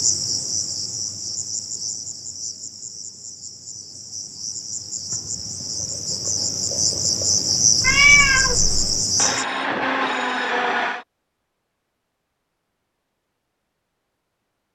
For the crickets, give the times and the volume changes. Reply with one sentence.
You can hear the crickets from 0.0 to 9.4 s, getting quieter then louder.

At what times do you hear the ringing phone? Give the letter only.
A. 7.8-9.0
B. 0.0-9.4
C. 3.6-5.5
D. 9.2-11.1
D.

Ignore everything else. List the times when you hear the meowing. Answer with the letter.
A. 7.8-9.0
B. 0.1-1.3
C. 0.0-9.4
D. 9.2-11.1
A.